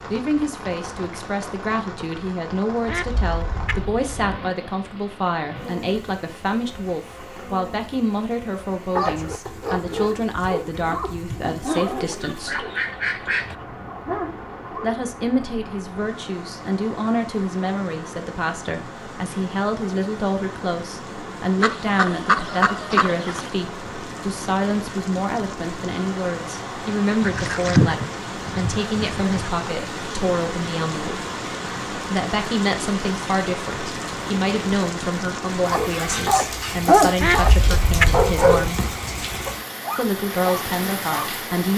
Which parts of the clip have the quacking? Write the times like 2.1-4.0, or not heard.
2.9-4.4, 11.7-13.6, 21.6-23.5, 27.2-29.5, 37.2-38.7.